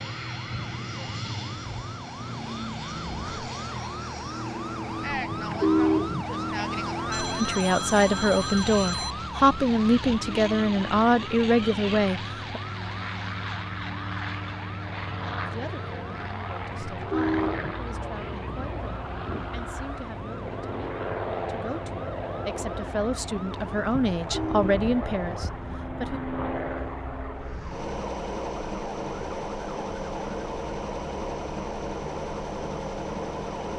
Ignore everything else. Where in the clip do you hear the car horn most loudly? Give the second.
6 s.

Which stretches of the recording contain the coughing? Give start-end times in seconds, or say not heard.
not heard.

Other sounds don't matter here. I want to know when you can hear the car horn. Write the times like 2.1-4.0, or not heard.
5.3-6.2, 16.8-17.8, 24.2-24.9.